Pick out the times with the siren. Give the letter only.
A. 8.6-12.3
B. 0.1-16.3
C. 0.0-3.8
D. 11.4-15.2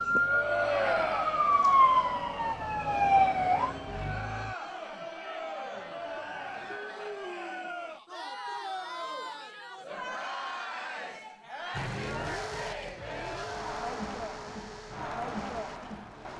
C.